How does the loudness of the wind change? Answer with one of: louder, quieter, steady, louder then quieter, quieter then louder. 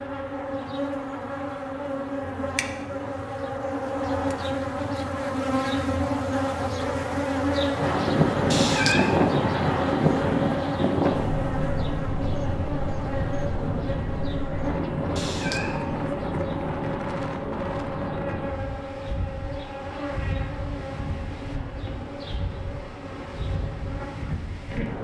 quieter.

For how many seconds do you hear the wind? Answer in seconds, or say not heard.
17 s.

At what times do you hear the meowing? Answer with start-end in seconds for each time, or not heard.
8.5-9.3, 15.2-16.1.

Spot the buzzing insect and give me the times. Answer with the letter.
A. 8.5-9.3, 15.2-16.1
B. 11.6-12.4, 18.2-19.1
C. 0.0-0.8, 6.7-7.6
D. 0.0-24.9
D.